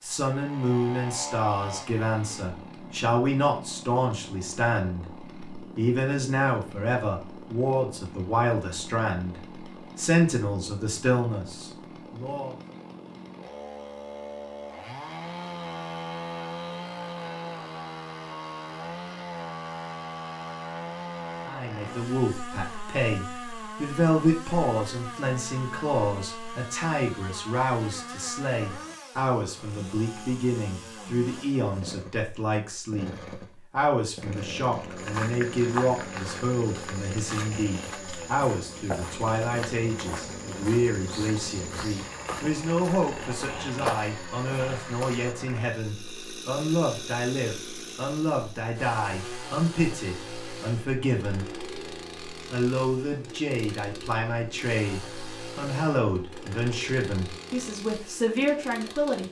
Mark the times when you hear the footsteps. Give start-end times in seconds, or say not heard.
35.0-45.4.